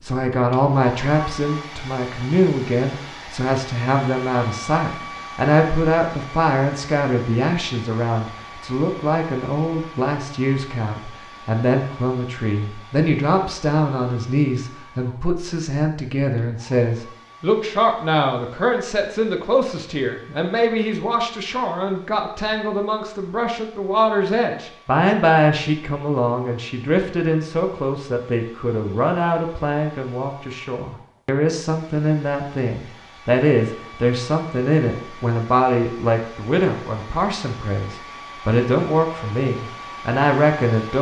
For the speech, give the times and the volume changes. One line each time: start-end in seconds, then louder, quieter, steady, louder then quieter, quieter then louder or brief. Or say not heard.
0.0-40.9 steady.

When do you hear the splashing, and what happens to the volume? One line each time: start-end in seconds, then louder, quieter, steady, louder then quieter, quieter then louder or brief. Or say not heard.
not heard.